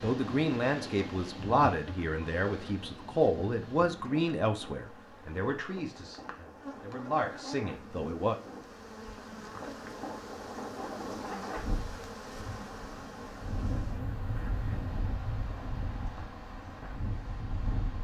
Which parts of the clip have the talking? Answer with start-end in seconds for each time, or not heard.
0.0-8.3.